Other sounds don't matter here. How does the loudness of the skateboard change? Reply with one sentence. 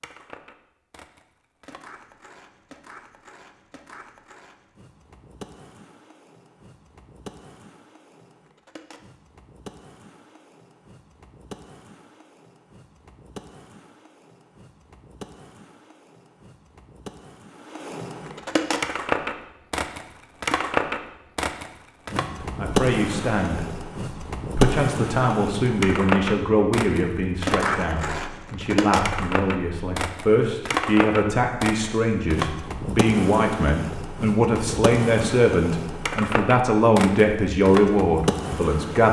The loudness of the skateboard goes up.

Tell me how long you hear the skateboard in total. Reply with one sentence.
The skateboard can be heard for 39 seconds in total.